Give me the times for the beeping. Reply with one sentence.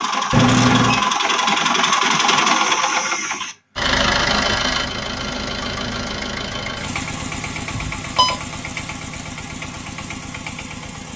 The beeping can be heard from 0.3 to 1.0 s and from 7.7 to 8.3 s.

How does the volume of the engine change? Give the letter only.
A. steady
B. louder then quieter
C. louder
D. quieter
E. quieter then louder
D.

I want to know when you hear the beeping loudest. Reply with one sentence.
The volume of the beeping peaks at 1 second.